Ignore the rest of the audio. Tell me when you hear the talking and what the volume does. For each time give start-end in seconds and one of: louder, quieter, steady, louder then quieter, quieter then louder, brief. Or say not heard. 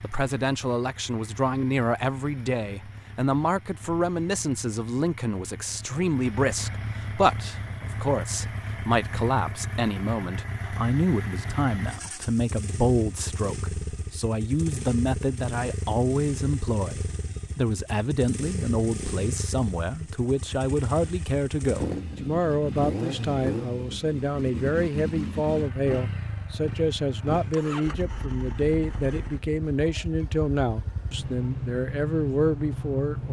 0.0-33.2 steady.